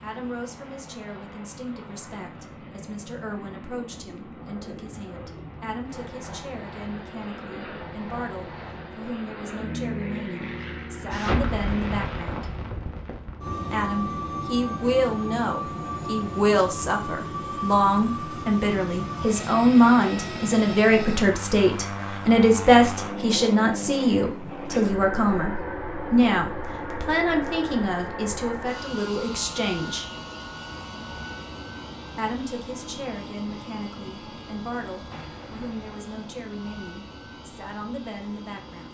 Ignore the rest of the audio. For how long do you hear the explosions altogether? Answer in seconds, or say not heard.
3 s.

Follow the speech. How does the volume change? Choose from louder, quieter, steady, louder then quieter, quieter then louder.
louder then quieter.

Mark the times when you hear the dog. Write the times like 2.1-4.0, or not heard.
not heard.